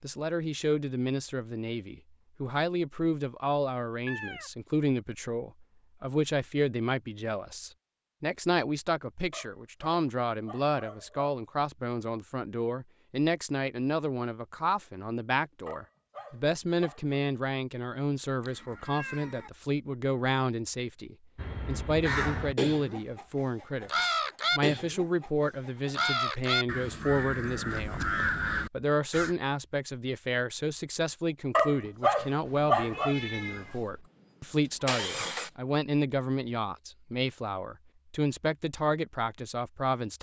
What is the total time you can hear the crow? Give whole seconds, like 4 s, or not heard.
8 s.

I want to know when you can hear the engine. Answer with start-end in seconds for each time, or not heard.
33.6-35.5.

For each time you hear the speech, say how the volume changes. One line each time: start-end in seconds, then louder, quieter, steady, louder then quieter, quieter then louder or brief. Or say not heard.
0.0-28.1 steady
28.7-40.1 steady.